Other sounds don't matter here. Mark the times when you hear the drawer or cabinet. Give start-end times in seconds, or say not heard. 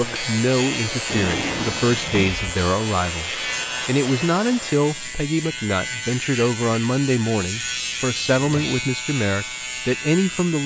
1.1-2.4, 8.3-8.8.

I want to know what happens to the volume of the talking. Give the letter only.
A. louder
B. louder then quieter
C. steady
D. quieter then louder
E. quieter
C.